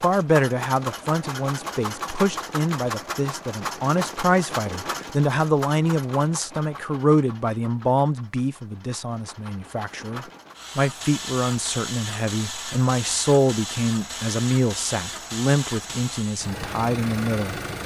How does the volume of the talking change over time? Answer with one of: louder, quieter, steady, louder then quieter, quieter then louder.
steady.